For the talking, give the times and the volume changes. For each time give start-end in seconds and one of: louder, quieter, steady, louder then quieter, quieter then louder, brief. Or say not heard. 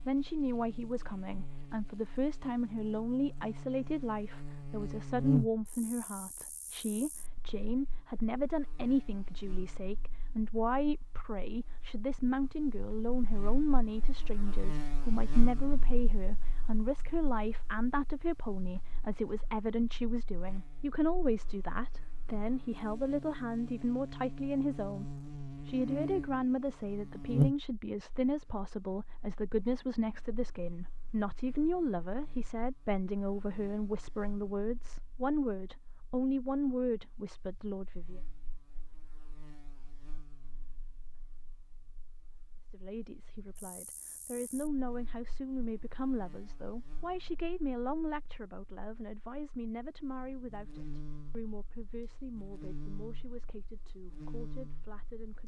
0.0-38.2 steady
42.6-55.4 quieter.